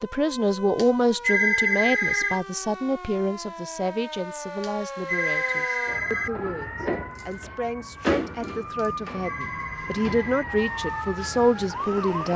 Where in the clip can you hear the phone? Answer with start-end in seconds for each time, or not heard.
0.8-2.4, 4.6-6.3, 8.8-10.4.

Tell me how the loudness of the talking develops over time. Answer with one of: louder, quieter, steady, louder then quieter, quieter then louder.
quieter then louder.